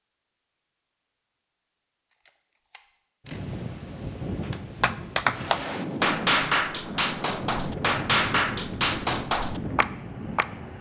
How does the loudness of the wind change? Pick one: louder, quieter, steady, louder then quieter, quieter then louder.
steady.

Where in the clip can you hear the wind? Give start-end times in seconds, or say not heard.
3.2-10.7.